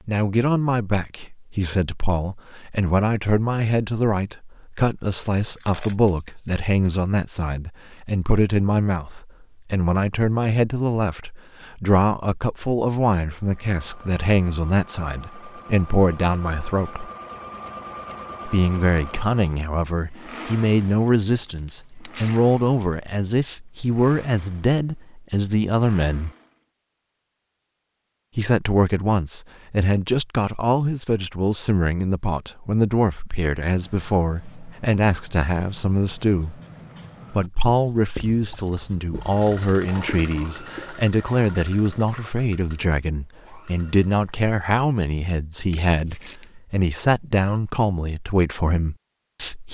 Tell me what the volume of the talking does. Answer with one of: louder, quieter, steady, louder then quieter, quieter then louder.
steady.